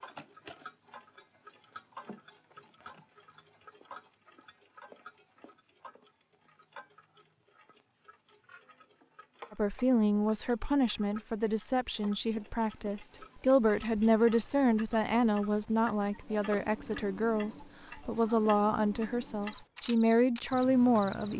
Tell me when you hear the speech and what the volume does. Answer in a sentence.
The speech can be heard from 9.5 to 21.3 s, at a steady volume.